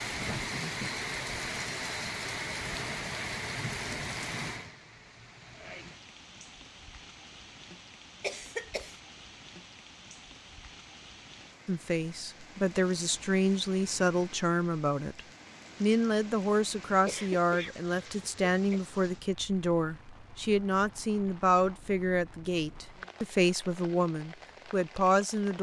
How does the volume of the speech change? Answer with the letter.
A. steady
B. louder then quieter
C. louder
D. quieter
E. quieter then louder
A.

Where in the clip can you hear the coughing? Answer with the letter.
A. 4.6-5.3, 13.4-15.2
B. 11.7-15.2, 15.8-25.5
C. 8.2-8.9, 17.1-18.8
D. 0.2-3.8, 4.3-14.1
C.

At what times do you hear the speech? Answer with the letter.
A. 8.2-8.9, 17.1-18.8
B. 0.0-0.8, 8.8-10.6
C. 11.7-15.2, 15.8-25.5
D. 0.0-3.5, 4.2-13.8
C.